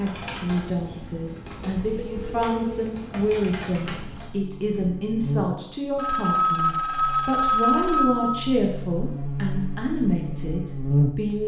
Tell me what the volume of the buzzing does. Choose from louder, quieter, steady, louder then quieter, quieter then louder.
quieter then louder.